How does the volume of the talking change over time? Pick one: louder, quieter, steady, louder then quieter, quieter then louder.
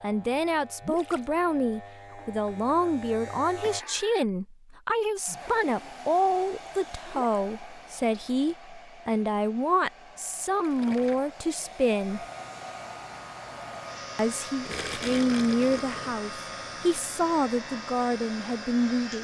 steady.